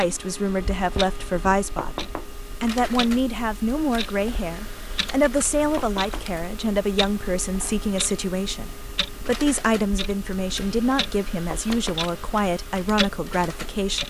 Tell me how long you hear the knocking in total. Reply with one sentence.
The knocking can be heard for 2 seconds in total.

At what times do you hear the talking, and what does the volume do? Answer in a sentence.
The talking can be heard from 0.0 to 14.0 s, at a steady volume.